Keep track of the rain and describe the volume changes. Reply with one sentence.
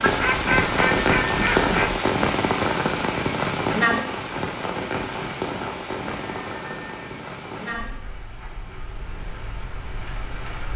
The loudness of the rain goes down.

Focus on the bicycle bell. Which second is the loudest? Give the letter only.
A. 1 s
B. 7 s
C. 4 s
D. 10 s
A.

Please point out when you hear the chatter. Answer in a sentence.
The chatter can't be heard in this clip.